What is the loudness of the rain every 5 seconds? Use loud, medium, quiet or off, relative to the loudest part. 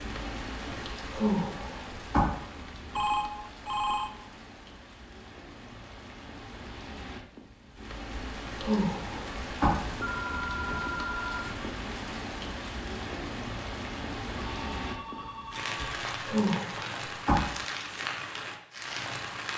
medium, medium, loud, loud.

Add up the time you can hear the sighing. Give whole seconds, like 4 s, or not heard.
5 s.